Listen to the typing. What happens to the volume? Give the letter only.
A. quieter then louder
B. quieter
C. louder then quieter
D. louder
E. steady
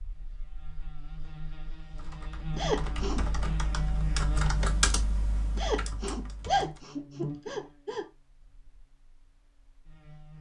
C.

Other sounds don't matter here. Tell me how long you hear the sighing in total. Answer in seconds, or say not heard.
3 s.